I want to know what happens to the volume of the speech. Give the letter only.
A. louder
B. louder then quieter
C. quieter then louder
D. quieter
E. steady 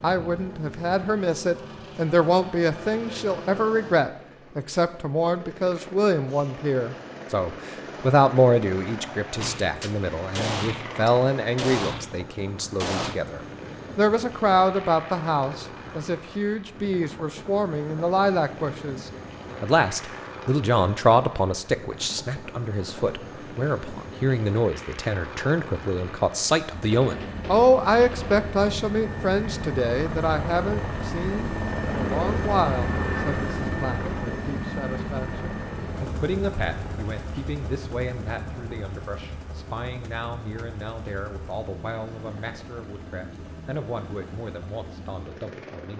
D.